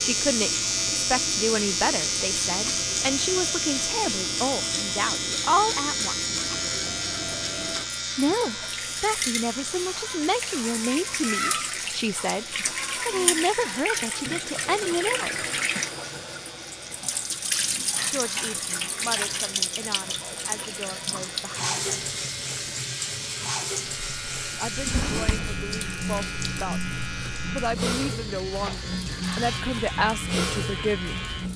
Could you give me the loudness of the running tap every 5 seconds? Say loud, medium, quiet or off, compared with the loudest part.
medium, medium, loud, loud, loud, loud, loud.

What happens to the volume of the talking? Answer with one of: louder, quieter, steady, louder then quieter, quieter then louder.
quieter then louder.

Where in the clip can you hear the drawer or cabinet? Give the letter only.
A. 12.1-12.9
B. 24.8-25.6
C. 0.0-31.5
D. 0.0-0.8
B.